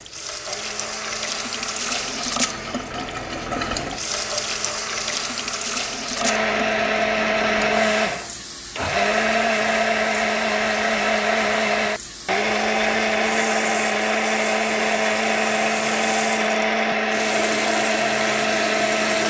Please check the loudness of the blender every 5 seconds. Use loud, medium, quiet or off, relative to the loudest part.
quiet, loud, loud, loud.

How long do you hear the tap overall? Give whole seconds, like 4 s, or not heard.
19 s.